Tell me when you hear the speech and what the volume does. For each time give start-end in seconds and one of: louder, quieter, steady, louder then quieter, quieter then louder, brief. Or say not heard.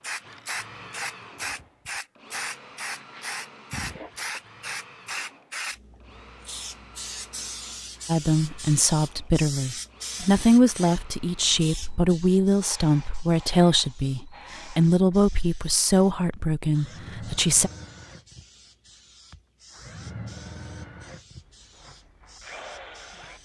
8.1-17.7 steady.